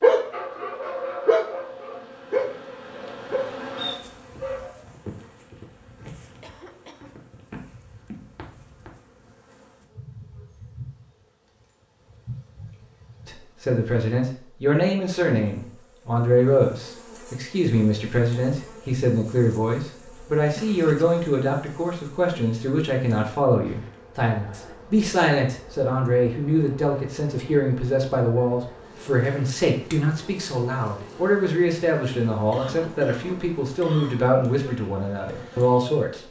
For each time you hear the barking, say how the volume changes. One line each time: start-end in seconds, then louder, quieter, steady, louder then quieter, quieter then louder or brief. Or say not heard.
0.0-4.7 louder then quieter.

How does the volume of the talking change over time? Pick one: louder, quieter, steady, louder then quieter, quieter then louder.
steady.